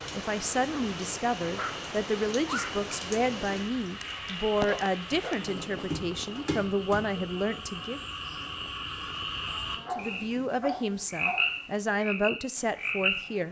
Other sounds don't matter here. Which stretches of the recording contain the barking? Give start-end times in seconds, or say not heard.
1.4-2.9, 4.7-5.3, 9.4-11.5.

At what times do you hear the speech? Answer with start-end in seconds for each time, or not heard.
0.1-8.0, 9.9-13.4.